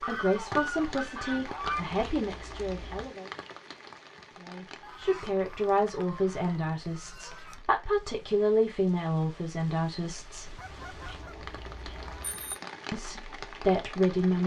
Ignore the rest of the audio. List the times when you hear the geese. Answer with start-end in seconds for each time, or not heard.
0.0-1.8, 4.8-7.7, 10.6-12.2.